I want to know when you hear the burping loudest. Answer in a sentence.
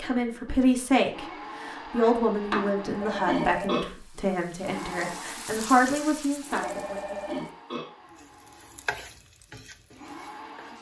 The loudest moment of the burping is at 3 seconds.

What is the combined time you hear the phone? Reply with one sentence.
You can hear the phone for 2 seconds altogether.